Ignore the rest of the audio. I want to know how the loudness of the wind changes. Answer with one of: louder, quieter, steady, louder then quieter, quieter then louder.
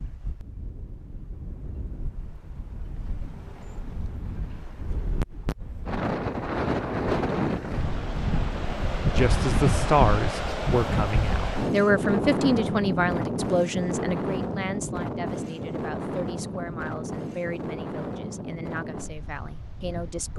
louder then quieter.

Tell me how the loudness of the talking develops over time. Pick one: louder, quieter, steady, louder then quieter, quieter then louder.
quieter.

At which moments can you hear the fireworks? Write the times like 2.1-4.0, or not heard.
not heard.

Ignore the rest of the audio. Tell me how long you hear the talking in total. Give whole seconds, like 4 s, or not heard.
11 s.